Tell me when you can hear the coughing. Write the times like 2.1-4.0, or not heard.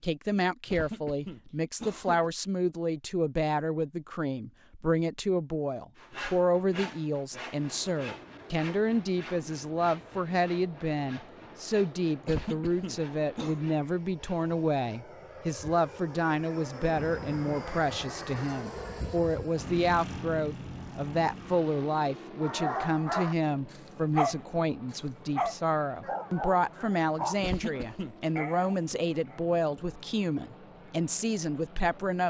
0.7-2.3, 12.2-13.6, 27.4-28.1.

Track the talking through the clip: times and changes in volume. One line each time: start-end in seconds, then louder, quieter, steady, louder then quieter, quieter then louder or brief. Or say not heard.
0.0-32.2 steady.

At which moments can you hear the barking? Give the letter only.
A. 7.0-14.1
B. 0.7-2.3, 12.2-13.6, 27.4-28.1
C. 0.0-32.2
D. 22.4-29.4
D.